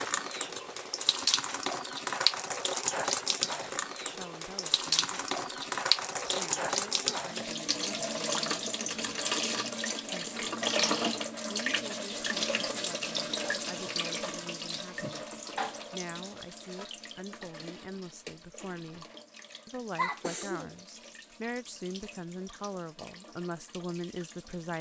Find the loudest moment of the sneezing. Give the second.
20 s.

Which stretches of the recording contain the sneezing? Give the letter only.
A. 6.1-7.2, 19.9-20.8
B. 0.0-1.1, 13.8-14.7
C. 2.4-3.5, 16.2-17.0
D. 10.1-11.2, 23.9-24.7
A.